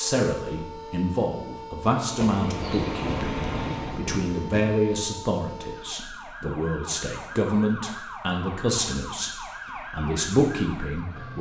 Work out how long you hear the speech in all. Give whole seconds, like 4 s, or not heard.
11 s.